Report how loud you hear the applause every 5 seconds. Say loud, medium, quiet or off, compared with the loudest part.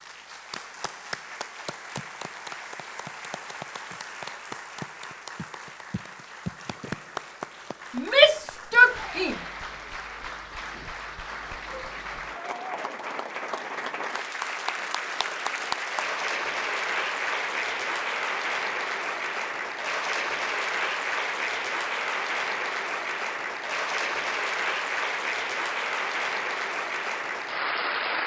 medium, medium, medium, loud, loud, loud.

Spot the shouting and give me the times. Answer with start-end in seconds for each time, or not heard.
8.0-9.3.